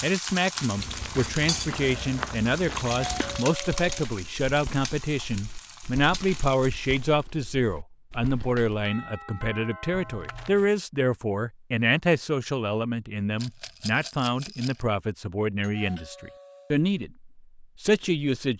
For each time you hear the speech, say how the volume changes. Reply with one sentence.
You can hear the speech from 0.0 to 18.5 s, at a steady volume.